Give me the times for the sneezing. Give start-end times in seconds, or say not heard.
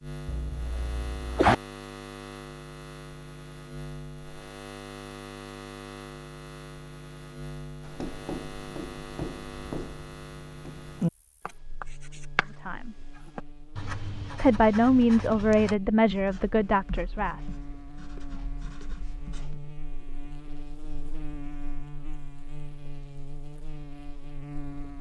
0.2-1.6.